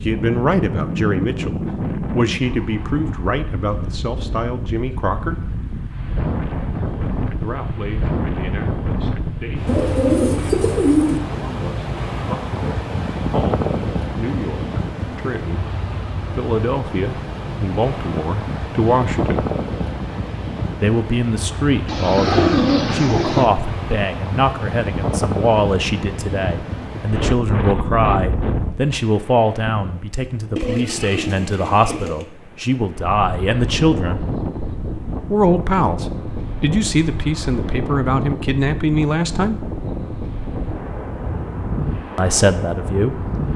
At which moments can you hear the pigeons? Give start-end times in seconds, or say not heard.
9.7-11.2, 21.9-23.4, 30.6-32.2.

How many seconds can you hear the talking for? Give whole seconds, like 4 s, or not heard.
36 s.